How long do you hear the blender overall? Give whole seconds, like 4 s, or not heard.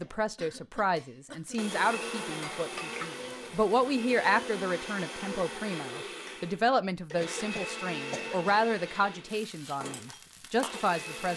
11 s.